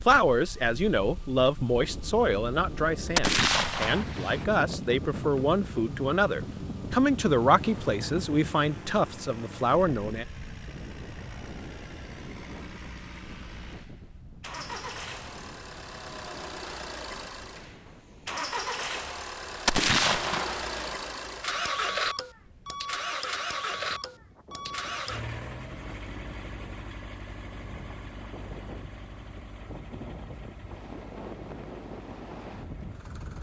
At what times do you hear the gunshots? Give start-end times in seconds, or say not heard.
3.1-4.5, 19.6-20.9.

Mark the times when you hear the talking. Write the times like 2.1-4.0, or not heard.
0.1-10.2.